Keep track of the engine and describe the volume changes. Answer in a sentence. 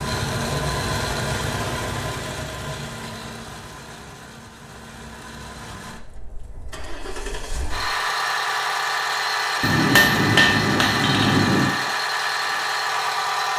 The loudness of the engine goes down, then up.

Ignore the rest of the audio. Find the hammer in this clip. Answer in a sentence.
You can hear the hammer from 9.6 to 11.8 s.